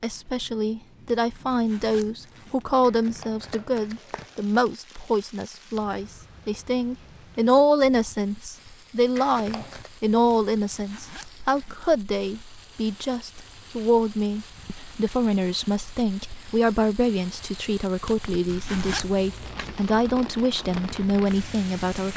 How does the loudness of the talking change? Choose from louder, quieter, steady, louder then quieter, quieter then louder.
steady.